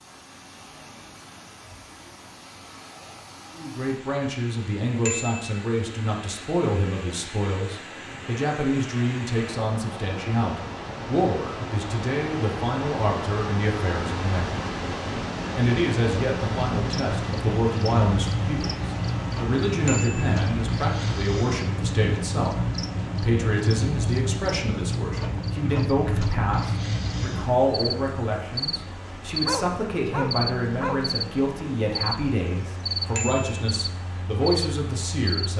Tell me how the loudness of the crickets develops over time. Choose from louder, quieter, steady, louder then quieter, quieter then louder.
steady.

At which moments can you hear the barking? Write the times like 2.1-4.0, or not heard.
29.4-31.1.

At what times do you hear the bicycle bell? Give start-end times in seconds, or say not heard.
5.0-5.5, 19.9-20.4, 33.1-33.6.